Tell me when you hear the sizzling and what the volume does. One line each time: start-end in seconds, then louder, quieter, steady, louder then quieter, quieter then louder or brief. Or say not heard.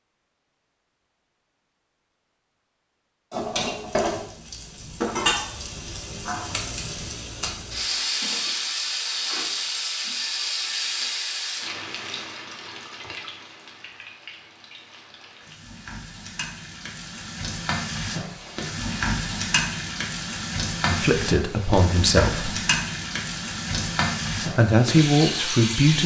3.3-26.0 quieter then louder.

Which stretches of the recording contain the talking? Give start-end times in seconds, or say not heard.
20.9-22.6, 24.4-26.0.